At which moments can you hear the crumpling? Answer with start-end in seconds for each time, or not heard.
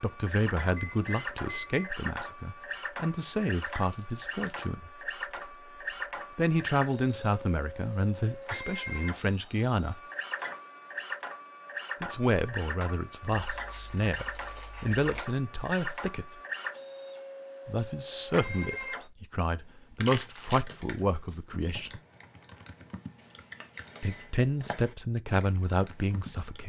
3.5-4.7, 13.4-15.2, 20.1-20.6.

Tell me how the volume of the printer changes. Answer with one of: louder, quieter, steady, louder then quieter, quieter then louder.
steady.